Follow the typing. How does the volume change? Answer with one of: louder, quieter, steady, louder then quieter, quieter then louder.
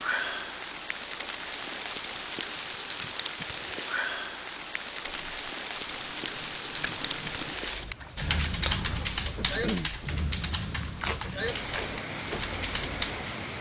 quieter then louder.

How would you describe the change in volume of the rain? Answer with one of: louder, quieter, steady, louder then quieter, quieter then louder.
steady.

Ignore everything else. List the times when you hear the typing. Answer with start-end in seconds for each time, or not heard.
7.5-13.2.